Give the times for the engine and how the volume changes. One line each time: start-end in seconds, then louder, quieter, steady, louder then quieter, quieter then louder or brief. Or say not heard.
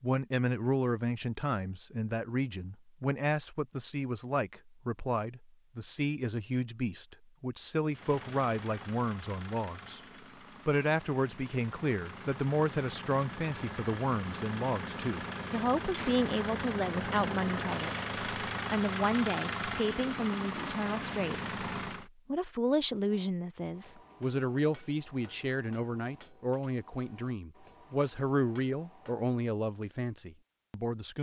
7.9-22.1 louder.